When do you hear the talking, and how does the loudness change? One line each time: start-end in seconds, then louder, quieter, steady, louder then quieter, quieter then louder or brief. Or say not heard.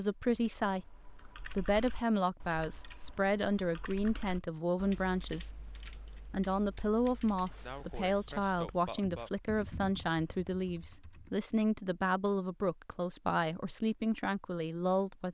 0.0-15.2 steady.